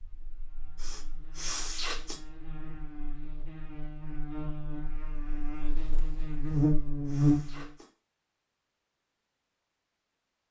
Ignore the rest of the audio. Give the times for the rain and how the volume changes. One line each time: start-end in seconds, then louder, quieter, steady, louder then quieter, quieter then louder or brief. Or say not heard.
not heard.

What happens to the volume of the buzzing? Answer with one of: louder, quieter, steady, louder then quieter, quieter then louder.
louder.